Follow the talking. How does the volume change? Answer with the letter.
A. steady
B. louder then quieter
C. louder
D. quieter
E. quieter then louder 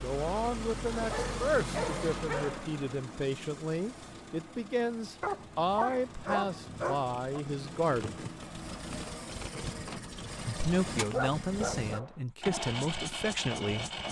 A.